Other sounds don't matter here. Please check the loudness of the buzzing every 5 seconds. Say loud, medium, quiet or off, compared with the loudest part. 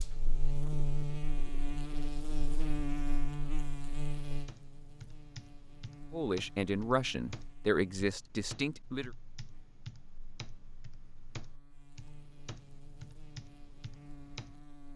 loud, quiet, quiet.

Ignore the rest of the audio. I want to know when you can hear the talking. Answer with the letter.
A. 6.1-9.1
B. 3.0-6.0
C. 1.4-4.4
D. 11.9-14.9
A.